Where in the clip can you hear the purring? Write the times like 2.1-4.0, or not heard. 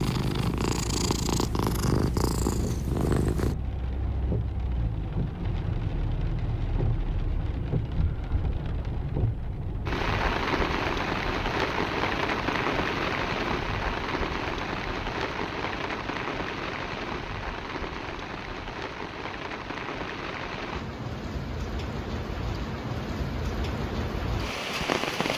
0.0-3.5.